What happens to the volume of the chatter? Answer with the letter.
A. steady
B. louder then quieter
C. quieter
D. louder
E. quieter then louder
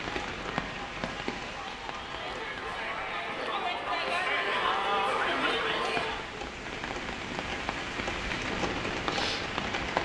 D.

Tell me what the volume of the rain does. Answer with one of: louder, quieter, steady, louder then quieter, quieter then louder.
quieter then louder.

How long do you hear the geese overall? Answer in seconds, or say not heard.
not heard.